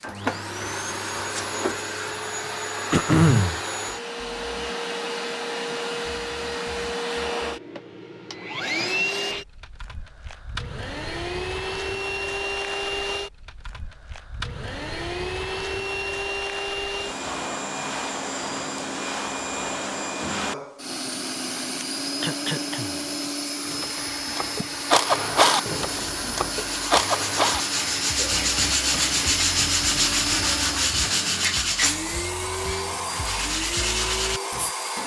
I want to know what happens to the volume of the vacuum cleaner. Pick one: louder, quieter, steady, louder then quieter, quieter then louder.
steady.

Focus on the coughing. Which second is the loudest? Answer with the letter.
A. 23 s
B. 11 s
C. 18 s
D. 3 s
D.